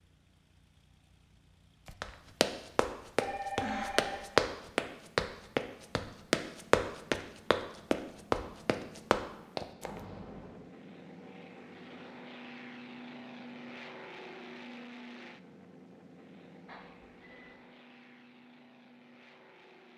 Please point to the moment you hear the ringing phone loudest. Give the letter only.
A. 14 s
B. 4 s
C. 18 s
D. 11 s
B.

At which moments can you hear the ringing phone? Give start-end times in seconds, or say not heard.
3.2-4.5, 9.8-10.7, 16.6-17.6.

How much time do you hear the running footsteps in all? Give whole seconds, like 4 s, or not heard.
8 s.